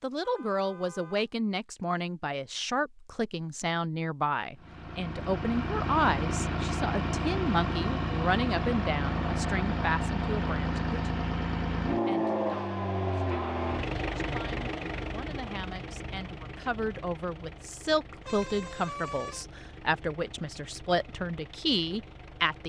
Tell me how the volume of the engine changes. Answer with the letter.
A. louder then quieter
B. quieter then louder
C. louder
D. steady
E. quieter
E.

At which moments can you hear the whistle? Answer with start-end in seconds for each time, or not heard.
not heard.